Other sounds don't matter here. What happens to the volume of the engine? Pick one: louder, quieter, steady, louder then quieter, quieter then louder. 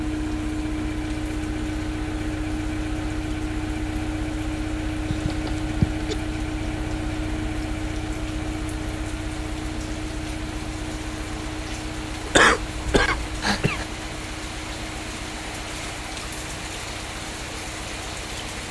quieter.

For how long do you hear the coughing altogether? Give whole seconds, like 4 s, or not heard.
3 s.